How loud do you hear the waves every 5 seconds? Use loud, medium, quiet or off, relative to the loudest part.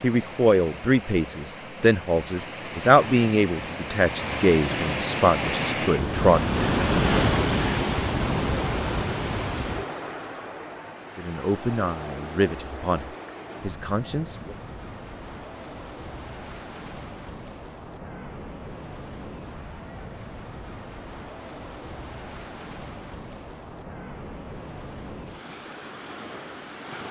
medium, loud, quiet, quiet, quiet, quiet.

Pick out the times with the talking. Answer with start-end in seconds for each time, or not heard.
0.0-6.5, 11.2-14.6.